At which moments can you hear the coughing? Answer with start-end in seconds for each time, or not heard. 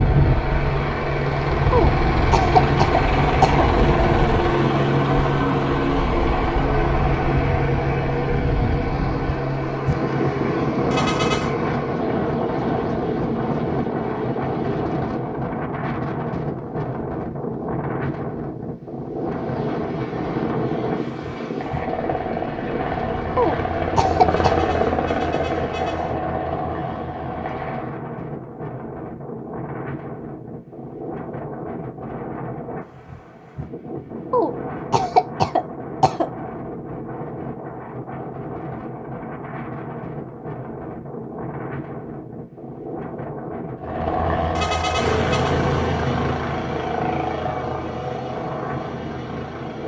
1.7-3.6, 23.4-24.6, 34.3-36.2.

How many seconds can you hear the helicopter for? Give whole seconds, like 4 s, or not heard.
30 s.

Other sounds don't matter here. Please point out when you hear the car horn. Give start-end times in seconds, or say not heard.
10.9-11.6, 24.3-26.2, 44.5-45.5.